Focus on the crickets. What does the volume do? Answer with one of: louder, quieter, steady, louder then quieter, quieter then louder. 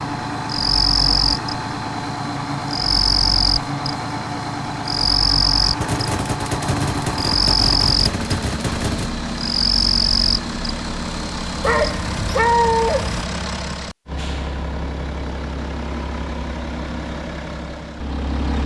steady.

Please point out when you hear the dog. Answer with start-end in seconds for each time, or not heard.
11.6-13.2.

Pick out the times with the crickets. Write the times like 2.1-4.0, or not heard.
0.0-11.8.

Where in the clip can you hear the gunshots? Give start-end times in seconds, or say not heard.
5.8-9.2.